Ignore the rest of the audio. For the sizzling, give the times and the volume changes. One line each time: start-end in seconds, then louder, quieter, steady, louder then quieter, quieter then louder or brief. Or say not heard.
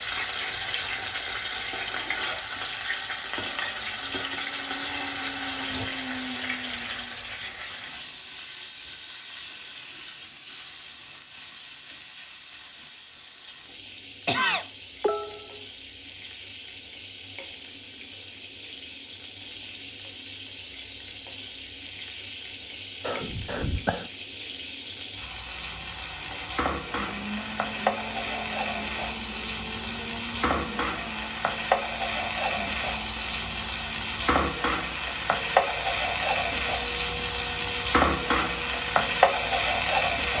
0.0-40.3 quieter then louder.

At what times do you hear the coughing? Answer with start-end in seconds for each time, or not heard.
14.2-15.6, 23.0-24.1.